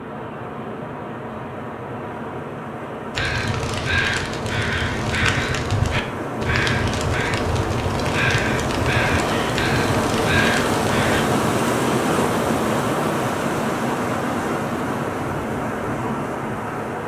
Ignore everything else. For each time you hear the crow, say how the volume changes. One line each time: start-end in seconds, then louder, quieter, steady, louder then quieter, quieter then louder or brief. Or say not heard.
3.1-11.2 steady.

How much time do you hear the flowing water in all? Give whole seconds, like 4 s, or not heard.
17 s.